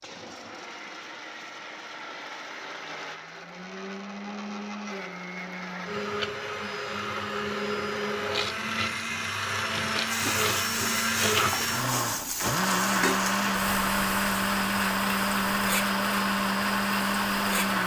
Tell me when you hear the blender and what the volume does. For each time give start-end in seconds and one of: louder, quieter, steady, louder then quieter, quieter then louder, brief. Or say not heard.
0.0-17.8 louder.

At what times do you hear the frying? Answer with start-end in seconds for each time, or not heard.
10.1-17.8.